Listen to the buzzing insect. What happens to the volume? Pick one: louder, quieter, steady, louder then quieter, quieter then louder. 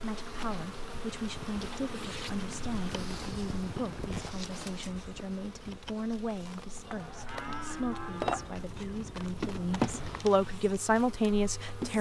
quieter then louder.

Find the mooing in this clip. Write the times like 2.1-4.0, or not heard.
6.8-8.5.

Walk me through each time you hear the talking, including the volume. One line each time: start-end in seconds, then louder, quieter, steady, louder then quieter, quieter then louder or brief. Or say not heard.
0.0-11.9 louder.